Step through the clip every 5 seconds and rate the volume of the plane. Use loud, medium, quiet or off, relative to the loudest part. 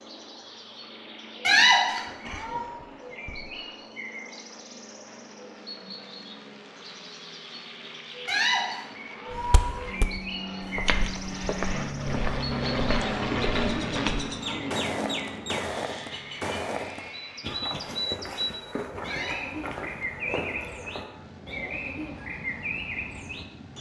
quiet, quiet, loud, medium, quiet.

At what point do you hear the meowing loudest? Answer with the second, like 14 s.
2 s.